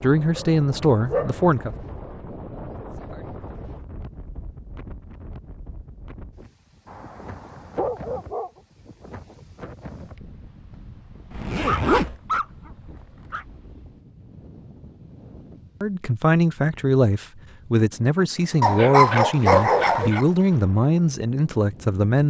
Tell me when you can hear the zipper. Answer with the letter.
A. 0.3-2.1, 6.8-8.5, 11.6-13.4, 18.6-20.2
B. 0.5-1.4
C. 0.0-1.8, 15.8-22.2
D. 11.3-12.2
D.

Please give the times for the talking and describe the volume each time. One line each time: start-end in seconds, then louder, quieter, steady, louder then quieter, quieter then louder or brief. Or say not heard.
0.0-1.8 brief
15.8-22.2 steady.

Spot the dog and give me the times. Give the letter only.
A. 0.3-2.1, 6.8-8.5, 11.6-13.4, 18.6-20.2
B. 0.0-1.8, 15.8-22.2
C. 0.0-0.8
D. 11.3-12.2
A.